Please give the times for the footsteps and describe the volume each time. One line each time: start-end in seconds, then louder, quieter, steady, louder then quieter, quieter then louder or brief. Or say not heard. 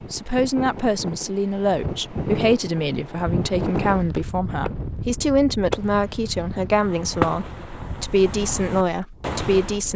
not heard.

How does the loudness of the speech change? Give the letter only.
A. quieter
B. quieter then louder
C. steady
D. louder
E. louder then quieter
C.